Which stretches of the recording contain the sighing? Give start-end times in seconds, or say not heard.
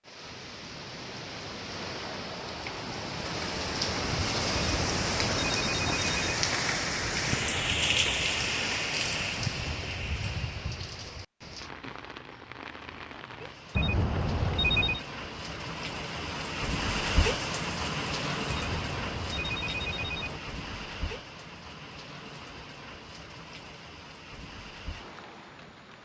not heard.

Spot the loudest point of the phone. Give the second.
15 s.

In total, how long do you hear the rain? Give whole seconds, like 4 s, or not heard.
26 s.